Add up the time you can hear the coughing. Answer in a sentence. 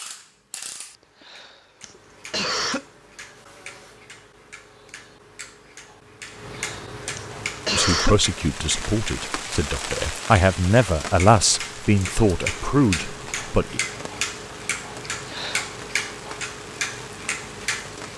You can hear the coughing for 4 seconds altogether.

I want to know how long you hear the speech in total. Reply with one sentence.
The speech can be heard for 6 seconds in total.